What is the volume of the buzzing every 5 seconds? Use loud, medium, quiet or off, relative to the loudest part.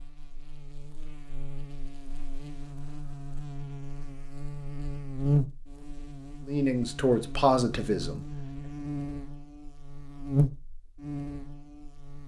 medium, loud, loud.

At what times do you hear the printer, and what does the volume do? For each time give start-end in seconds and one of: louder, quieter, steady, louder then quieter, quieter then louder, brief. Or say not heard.
not heard.